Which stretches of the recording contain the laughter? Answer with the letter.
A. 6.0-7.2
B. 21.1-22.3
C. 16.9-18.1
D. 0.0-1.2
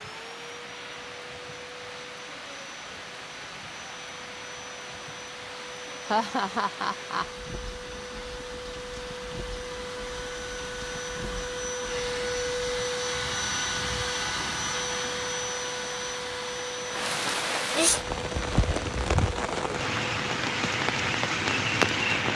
A.